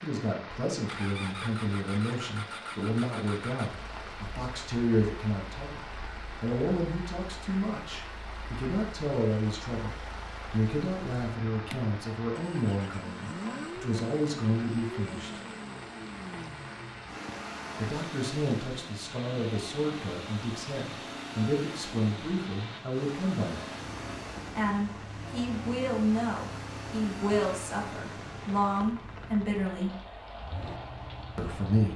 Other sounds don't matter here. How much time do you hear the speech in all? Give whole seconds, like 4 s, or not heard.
27 s.